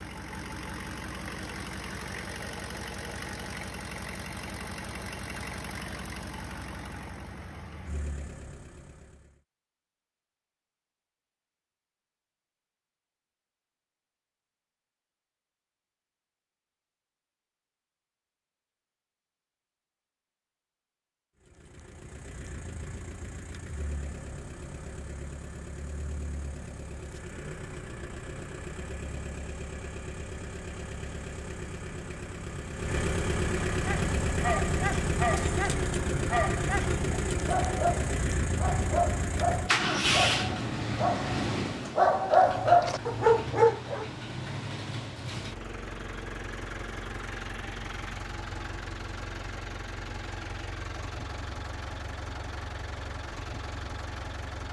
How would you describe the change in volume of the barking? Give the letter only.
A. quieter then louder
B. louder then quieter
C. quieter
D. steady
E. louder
E.